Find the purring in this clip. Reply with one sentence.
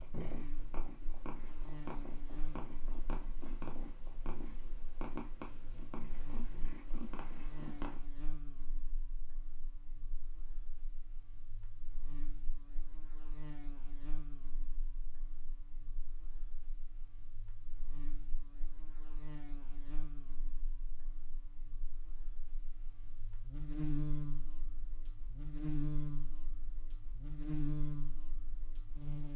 The purring can be heard from 0.0 to 8.0 s.